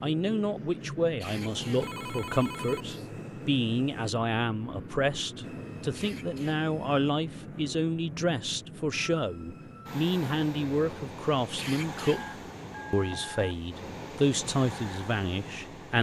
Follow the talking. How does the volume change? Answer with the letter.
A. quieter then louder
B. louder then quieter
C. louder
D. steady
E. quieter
D.